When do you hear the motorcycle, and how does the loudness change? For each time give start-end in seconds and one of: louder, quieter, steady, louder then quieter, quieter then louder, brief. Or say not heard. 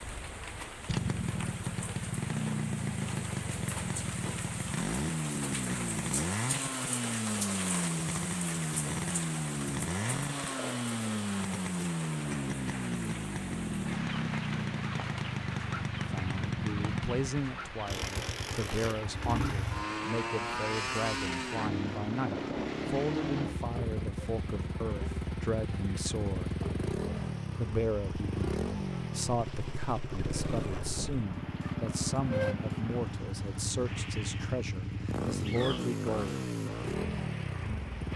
0.0-38.1 steady.